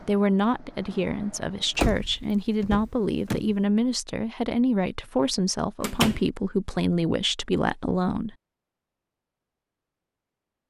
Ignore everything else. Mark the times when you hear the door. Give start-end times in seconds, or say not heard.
1.8-3.5, 5.8-6.2.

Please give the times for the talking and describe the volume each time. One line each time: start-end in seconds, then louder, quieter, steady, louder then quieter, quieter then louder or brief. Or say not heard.
0.0-8.3 steady.